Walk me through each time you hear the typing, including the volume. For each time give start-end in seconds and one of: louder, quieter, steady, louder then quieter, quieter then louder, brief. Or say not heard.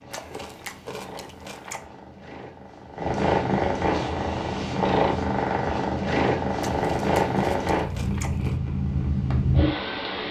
not heard.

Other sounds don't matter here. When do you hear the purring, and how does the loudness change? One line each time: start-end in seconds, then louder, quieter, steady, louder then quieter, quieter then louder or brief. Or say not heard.
0.0-10.2 louder.